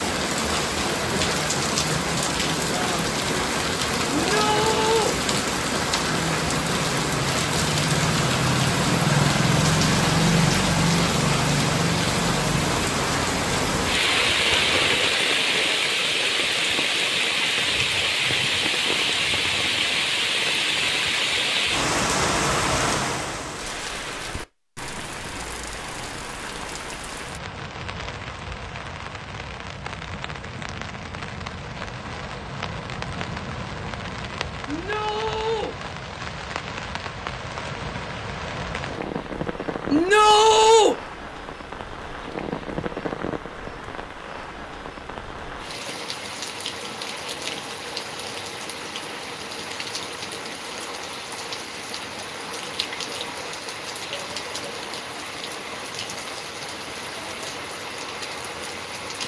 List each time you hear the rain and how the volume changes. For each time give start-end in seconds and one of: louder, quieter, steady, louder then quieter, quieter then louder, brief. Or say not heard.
0.0-59.2 quieter.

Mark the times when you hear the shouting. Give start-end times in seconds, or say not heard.
4.1-5.2, 34.6-35.7, 39.9-41.0.